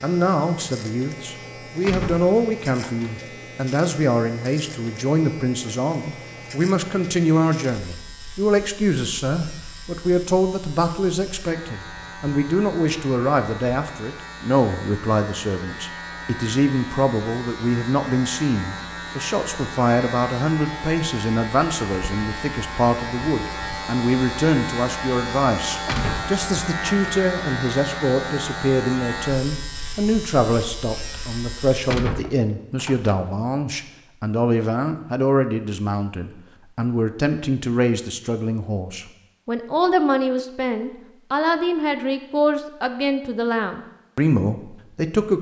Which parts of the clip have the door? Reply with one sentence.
The door can be heard from 1.8 to 3.2 s, from 25.9 to 27.2 s and from 31.9 to 33.2 s.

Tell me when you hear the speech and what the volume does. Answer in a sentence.
You can hear the speech from 0.0 to 45.3 s, at a steady volume.